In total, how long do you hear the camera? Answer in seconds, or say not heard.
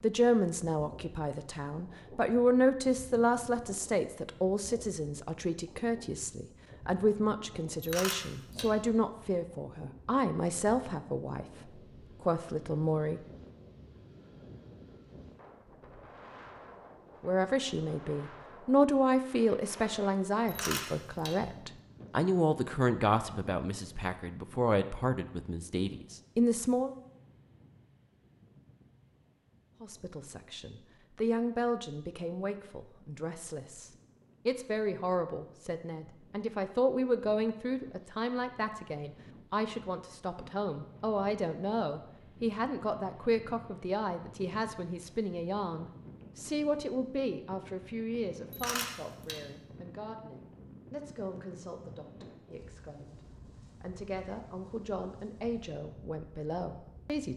3 s.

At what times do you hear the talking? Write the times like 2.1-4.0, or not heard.
0.0-13.2, 17.2-26.9, 29.8-53.2, 53.8-57.3.